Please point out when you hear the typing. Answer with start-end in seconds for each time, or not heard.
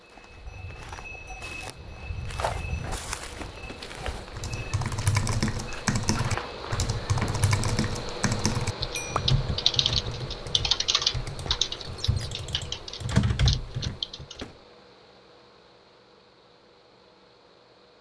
4.3-14.4.